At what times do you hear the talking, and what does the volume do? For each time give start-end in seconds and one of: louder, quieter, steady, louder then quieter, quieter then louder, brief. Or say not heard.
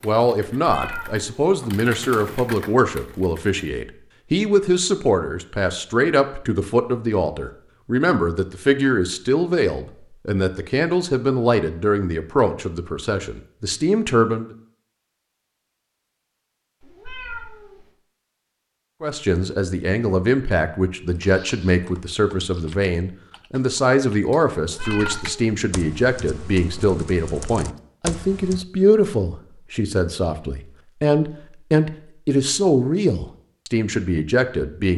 0.0-14.5 steady
19.0-34.9 steady.